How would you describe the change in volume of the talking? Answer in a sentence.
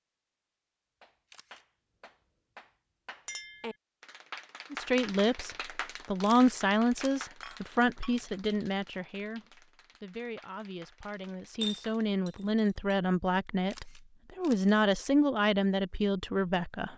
The volume of the talking goes down, then up.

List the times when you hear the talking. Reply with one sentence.
You can hear the talking from 4.7 to 16.9 s.